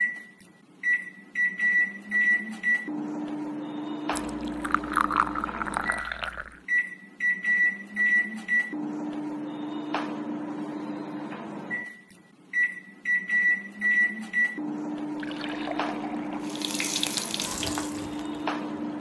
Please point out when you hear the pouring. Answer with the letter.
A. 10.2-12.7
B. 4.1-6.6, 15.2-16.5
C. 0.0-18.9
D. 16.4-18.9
B.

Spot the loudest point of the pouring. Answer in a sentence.
The loudest moment of the pouring is at 5 seconds.